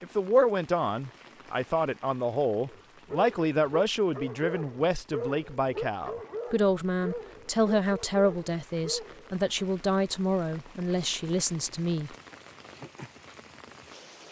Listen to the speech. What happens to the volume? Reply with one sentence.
The volume of the speech stays about the same.